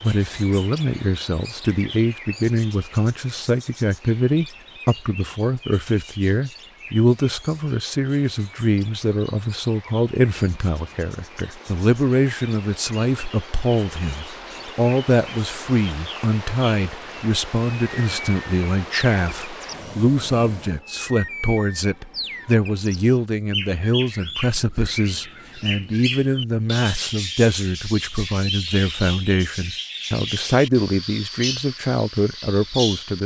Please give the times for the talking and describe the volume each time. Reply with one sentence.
The talking can be heard from 0.0 to 33.2 s, at a steady volume.